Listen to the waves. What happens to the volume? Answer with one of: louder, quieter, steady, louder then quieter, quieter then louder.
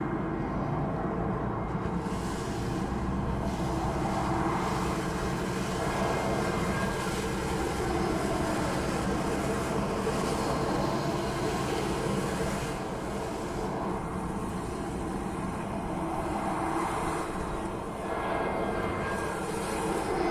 quieter.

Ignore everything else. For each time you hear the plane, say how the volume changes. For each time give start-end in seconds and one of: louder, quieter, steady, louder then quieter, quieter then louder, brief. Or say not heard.
0.0-20.2 steady.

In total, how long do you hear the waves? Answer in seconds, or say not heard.
20 s.